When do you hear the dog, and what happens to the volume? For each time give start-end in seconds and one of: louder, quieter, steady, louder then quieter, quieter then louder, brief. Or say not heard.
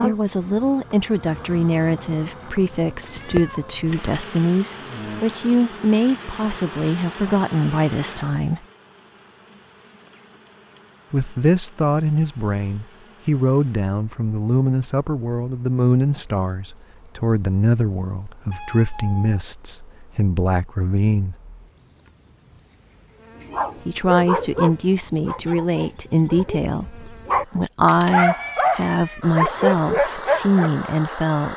23.4-30.7 quieter then louder.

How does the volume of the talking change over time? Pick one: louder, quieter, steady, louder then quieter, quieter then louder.
steady.